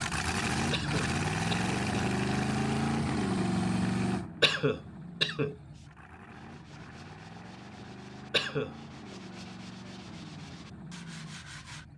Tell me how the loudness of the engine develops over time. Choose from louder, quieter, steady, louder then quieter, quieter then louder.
quieter.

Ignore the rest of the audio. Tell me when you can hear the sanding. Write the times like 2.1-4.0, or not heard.
5.7-11.8.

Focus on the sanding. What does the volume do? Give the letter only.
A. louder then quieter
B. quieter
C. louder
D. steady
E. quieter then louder
C.